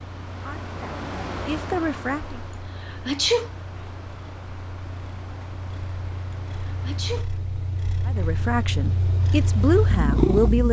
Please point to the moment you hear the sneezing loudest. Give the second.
3 s.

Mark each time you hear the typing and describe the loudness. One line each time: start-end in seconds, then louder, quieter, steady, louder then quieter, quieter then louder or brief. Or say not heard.
not heard.